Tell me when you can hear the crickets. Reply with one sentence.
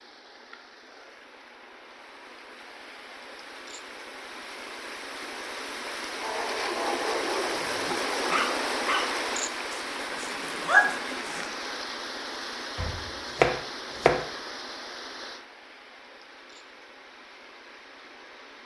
The crickets can't be heard in this clip.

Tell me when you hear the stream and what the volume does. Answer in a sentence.
You can hear the stream from 0.0 to 18.6 s, getting louder then quieter.